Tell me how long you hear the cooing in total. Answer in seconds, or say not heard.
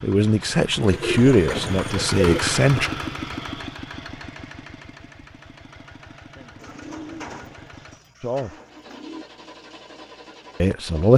4 s.